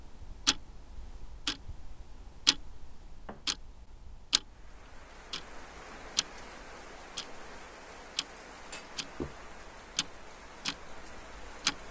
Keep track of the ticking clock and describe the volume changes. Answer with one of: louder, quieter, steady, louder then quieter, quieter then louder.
quieter.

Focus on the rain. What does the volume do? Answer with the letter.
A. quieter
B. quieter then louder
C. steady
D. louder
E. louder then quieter
C.